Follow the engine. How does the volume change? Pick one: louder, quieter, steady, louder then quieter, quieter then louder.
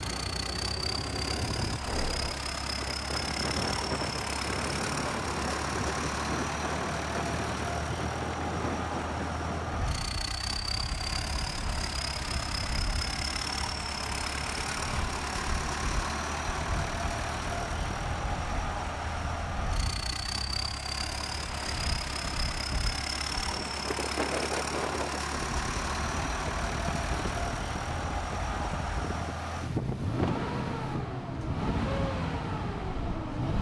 steady.